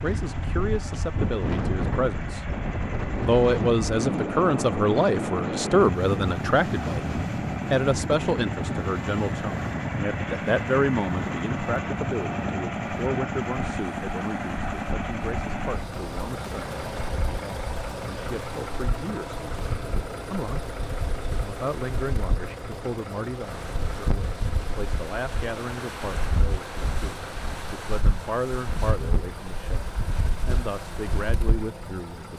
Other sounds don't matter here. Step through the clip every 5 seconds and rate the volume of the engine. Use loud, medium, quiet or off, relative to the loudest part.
medium, loud, loud, loud, medium, medium, medium.